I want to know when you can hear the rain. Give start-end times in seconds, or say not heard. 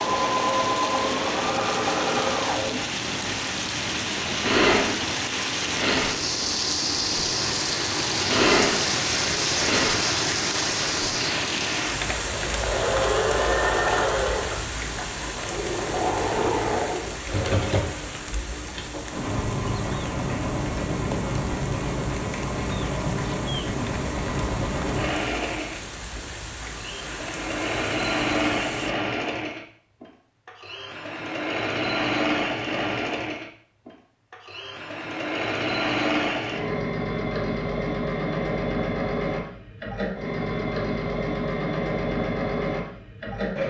0.0-28.9.